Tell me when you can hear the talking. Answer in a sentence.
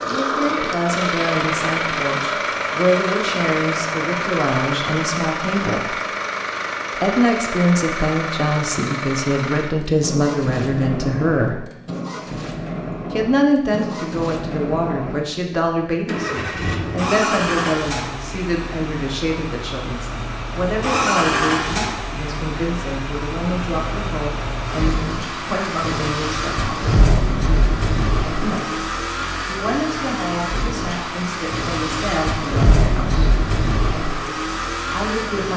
The talking can be heard from 0.0 to 6.0 s, from 7.0 to 11.7 s, from 13.1 to 26.9 s, from 28.4 to 33.2 s and from 34.9 to 35.5 s.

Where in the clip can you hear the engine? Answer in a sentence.
You can hear the engine from 0.0 to 35.5 s.